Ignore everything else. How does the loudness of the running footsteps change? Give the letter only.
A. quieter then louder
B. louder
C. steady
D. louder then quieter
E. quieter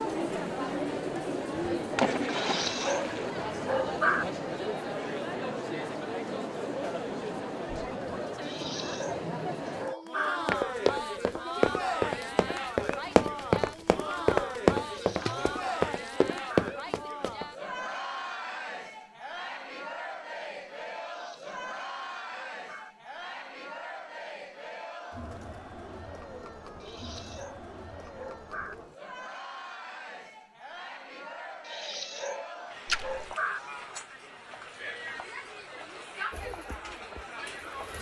C.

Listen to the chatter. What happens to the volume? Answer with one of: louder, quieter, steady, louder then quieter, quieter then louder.
quieter.